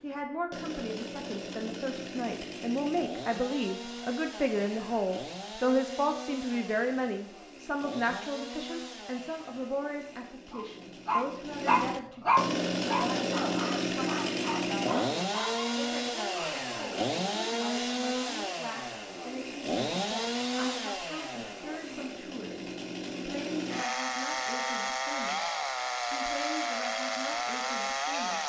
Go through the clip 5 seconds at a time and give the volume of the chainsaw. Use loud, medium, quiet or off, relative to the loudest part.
medium, medium, loud, loud, loud, loud.